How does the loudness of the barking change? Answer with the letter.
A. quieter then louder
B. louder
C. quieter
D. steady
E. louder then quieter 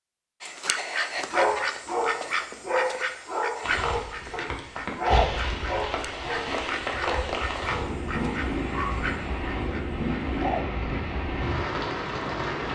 C.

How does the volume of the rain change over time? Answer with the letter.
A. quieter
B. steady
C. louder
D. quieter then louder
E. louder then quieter
B.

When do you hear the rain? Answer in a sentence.
The rain can be heard from 3.6 to 12.7 s.